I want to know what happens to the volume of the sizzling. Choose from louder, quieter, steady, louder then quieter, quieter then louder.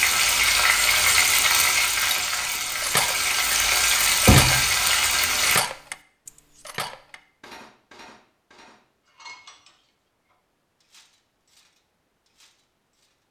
quieter then louder.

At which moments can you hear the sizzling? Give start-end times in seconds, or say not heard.
0.0-5.6.